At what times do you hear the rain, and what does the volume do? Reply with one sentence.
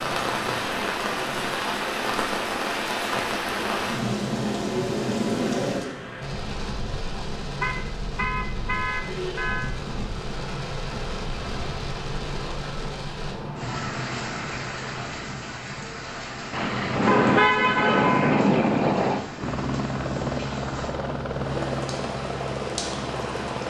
The rain can be heard from 0.0 to 23.6 s, getting quieter.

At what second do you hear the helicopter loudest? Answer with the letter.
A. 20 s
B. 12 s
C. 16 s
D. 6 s
A.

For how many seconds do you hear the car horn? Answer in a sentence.
The car horn can be heard for 5 seconds in total.